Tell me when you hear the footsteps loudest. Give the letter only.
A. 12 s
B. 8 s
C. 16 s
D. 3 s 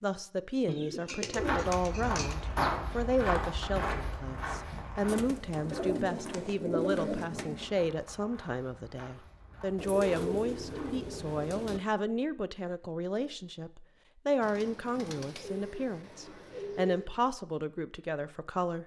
D.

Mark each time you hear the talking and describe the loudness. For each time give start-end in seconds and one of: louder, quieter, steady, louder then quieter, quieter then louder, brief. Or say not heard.
0.0-18.8 steady.